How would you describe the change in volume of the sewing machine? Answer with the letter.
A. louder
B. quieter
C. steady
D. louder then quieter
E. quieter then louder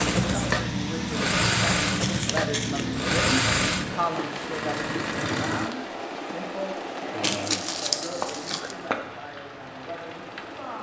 B.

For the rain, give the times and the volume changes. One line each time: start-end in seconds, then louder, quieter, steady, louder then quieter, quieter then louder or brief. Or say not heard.
0.0-10.7 quieter.